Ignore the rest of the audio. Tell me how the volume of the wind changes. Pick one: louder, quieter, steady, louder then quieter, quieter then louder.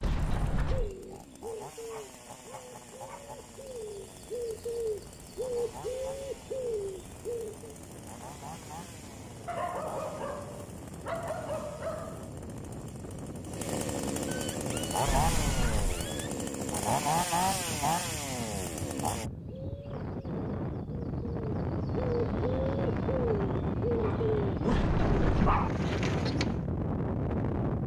louder.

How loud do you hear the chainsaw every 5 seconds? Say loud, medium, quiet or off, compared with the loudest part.
quiet, quiet, medium, loud, off, off.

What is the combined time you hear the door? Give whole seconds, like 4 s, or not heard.
3 s.